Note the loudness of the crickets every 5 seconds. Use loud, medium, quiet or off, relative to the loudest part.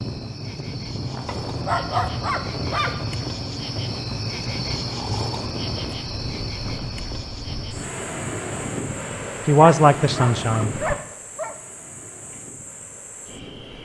loud, loud, medium.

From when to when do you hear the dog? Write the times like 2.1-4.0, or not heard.
1.2-2.9, 9.6-11.6.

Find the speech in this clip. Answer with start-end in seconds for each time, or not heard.
9.4-10.9.